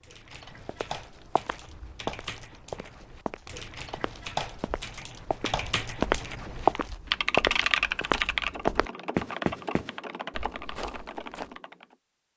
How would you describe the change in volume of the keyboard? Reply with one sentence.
The loudness of the keyboard goes up, then down.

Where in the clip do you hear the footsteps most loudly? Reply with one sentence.
The loudest moment of the footsteps is at 7 seconds.